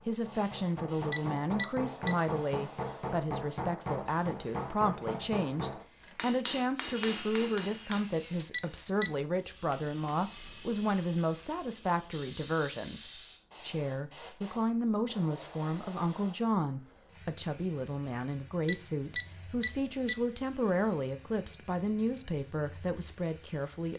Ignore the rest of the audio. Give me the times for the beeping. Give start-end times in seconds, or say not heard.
1.1-2.1, 8.5-9.1, 18.6-20.1.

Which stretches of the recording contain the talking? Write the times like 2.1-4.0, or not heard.
0.1-23.9.